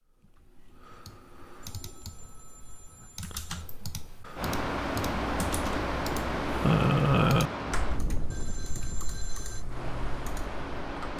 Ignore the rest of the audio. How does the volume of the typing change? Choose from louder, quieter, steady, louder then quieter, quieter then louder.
louder then quieter.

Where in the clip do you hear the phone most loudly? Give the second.
9 s.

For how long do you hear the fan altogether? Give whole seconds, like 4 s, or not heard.
7 s.